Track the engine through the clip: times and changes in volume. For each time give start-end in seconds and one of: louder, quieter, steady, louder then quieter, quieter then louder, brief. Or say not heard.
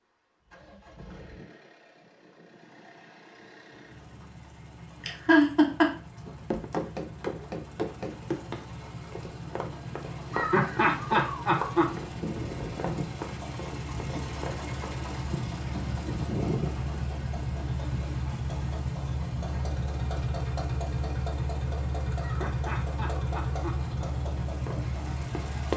0.0-25.7 louder.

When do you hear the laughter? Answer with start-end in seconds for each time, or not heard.
5.0-5.9, 10.3-11.9, 22.2-24.1.